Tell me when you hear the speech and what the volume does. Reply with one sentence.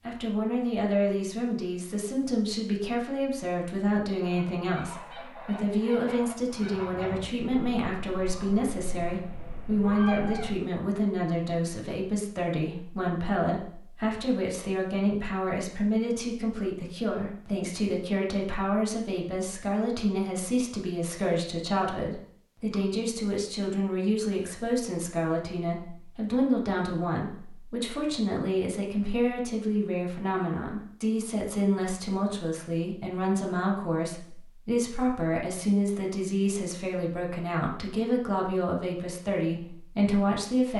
The speech can be heard from 0.1 to 40.7 s, at a steady volume.